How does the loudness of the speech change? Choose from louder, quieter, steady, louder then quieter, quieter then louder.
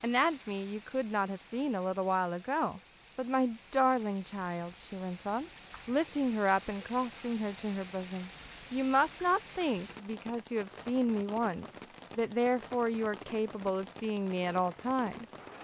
steady.